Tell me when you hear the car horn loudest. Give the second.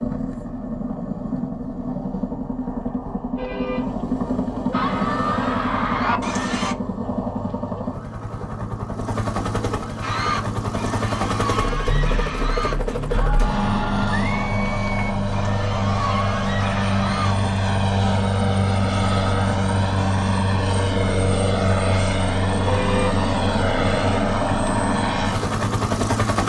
23 s.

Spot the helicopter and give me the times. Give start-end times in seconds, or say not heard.
0.0-26.4.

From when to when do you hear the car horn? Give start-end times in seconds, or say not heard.
3.4-4.0, 22.6-23.2.